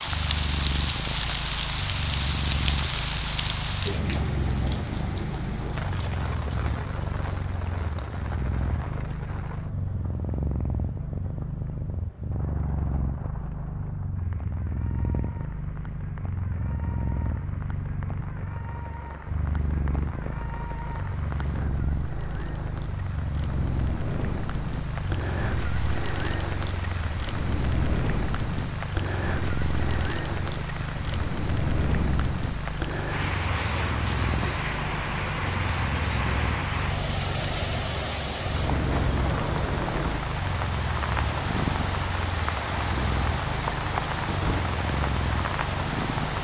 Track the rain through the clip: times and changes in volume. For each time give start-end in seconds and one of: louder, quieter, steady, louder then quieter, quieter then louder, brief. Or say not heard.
0.0-46.3 quieter then louder.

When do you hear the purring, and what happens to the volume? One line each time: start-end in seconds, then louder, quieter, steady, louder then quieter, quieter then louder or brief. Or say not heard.
0.0-46.3 steady.